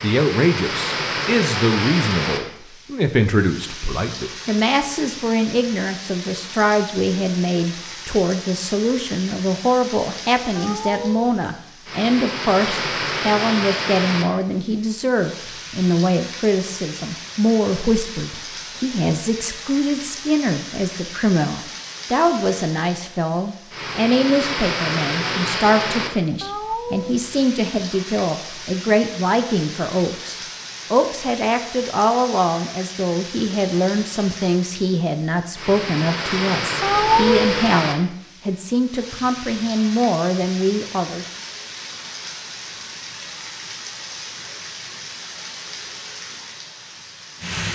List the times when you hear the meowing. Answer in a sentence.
The meowing can be heard from 10.6 to 11.3 s, from 26.4 to 27.3 s and from 36.8 to 37.5 s.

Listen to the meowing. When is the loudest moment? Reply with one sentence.
The volume of the meowing peaks at 37 seconds.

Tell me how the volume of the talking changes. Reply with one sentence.
The loudness of the talking stays about the same.